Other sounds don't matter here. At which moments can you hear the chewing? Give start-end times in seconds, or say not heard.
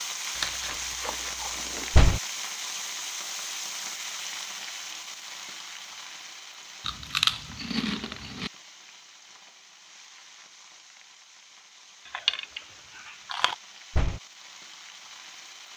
0.3-1.9, 6.8-8.5, 12.1-13.6.